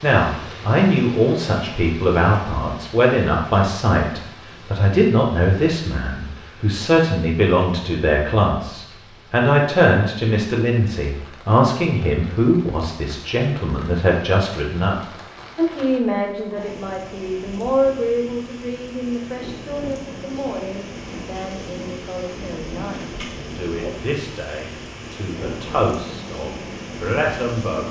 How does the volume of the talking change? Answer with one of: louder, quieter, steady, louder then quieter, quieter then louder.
quieter.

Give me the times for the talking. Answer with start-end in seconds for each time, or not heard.
0.0-27.8.